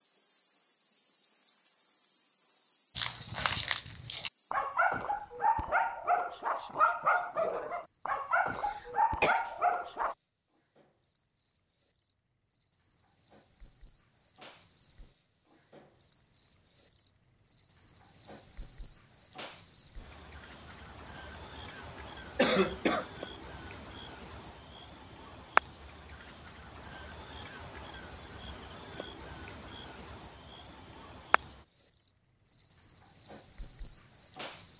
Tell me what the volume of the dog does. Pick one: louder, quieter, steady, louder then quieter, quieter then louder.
steady.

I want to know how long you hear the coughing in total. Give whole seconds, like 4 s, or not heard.
2 s.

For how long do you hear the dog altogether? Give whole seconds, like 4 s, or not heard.
7 s.